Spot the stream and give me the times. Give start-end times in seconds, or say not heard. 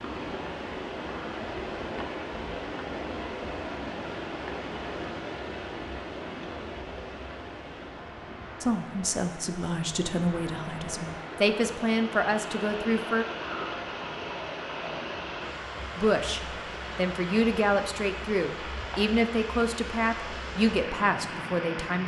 0.0-22.0.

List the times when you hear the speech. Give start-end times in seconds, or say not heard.
8.6-13.2, 15.9-22.0.